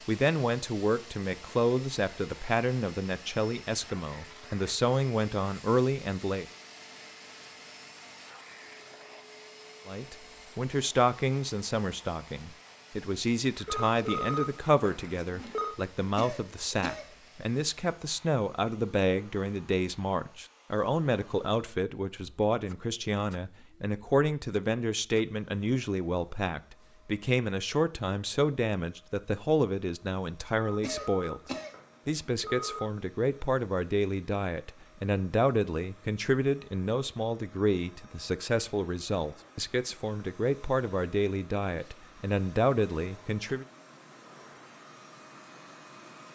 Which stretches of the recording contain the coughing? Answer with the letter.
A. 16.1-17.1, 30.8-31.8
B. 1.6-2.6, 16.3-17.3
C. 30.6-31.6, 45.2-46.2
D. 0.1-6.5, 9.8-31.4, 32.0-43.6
A.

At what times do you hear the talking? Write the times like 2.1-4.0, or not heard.
0.1-6.5, 9.8-31.4, 32.0-43.6.